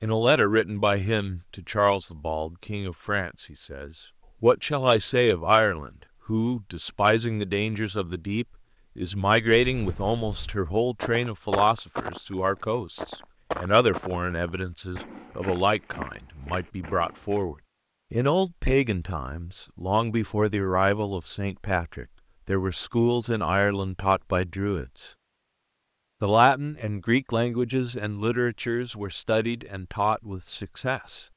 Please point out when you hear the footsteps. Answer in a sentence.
The footsteps can be heard from 9.6 to 17.4 s.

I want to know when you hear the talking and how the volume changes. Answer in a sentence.
The talking can be heard from 0.0 to 25.1 s, at a steady volume; and from 26.2 to 31.2 s, at a steady volume.